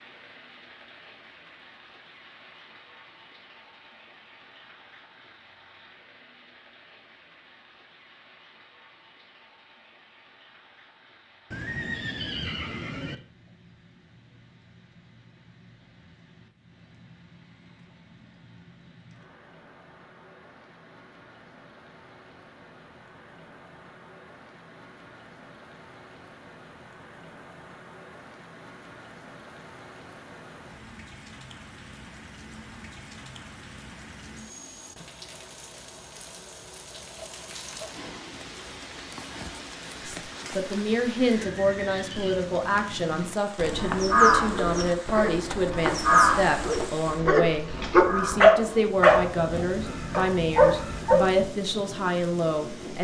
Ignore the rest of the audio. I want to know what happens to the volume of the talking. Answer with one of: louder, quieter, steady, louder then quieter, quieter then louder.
steady.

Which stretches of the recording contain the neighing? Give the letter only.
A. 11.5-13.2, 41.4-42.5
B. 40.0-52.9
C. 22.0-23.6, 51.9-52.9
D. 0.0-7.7
A.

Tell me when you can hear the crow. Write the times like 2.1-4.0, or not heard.
43.6-51.3.